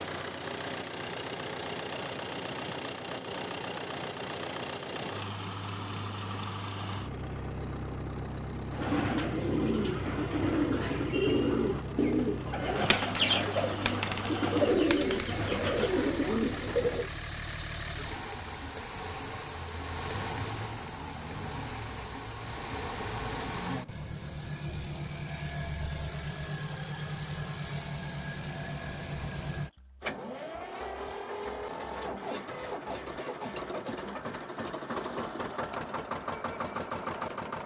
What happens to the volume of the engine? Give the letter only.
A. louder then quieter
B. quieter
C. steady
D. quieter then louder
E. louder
C.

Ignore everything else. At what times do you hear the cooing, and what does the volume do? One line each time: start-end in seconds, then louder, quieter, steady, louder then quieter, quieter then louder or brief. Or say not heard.
8.7-17.1 steady.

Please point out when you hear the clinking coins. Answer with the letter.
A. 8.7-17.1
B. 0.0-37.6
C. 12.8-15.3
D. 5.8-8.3
C.